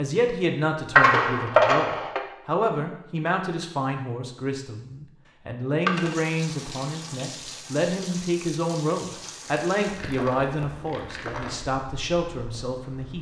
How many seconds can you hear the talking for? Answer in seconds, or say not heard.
13 s.